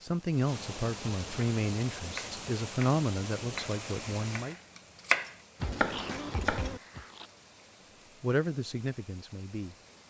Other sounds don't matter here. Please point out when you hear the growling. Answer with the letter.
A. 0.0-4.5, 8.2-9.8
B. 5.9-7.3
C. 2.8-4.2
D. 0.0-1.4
B.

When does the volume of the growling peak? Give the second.
6 s.